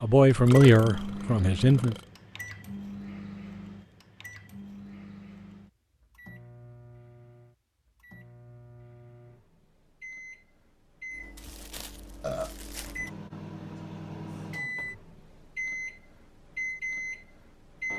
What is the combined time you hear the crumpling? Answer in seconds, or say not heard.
2 s.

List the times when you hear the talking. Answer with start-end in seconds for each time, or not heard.
0.0-1.9.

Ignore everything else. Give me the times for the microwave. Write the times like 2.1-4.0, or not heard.
0.0-17.9.